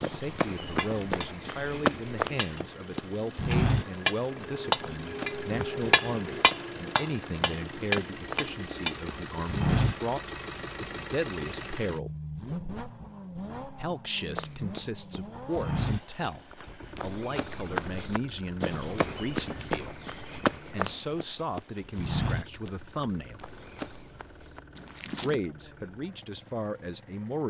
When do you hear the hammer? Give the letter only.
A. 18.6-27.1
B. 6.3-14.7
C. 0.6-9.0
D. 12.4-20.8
C.